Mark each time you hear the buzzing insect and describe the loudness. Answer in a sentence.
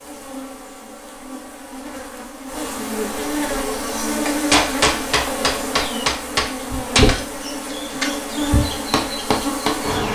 The buzzing insect can be heard from 0.0 to 10.0 s, getting louder.